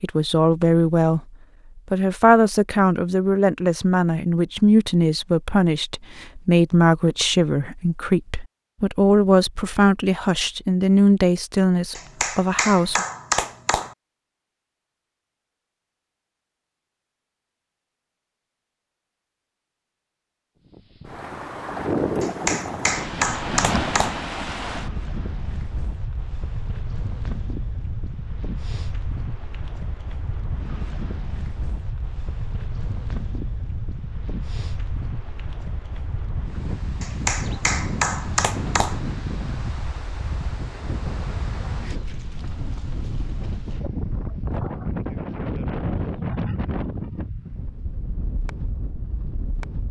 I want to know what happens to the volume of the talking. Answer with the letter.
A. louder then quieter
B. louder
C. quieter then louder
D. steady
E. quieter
D.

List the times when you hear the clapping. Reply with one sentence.
You can hear the clapping from 11.9 to 13.9 s, from 22.2 to 24.2 s and from 37.0 to 39.0 s.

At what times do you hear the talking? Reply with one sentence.
The talking can be heard from 0.0 to 13.1 s.